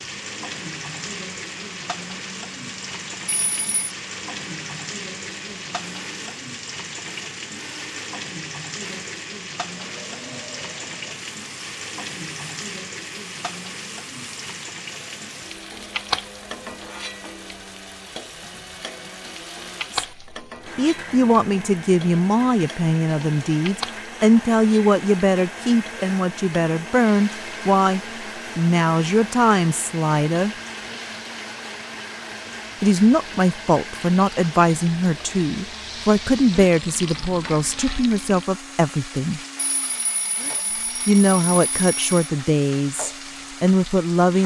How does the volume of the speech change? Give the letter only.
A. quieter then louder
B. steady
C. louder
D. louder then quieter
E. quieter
B.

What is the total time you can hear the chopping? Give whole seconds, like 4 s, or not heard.
not heard.